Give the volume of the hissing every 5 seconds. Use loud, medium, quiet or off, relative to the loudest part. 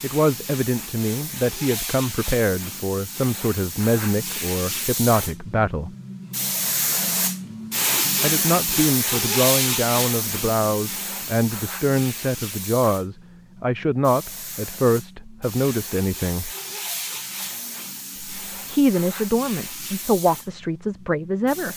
medium, loud, medium, medium, quiet.